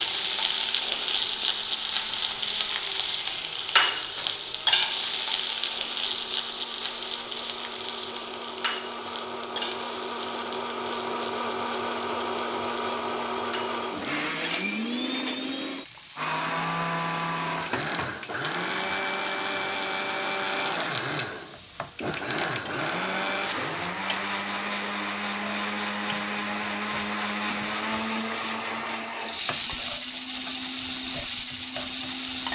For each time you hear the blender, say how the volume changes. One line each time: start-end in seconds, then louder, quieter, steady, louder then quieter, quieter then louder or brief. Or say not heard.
0.0-32.5 louder.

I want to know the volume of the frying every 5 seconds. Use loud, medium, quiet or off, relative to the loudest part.
loud, medium, quiet, quiet, quiet, quiet, quiet.